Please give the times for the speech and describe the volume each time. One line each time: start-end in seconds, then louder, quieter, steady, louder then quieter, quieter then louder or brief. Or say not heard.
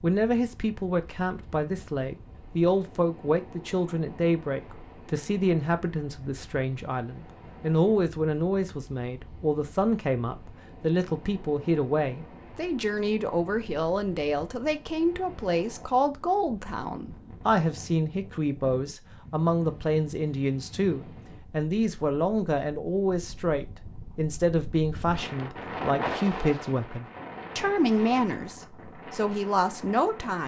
0.0-30.4 steady.